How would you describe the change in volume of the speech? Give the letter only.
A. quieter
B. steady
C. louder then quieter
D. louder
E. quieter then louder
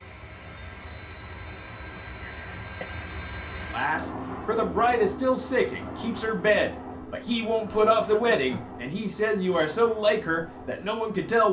B.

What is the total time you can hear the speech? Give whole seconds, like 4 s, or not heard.
8 s.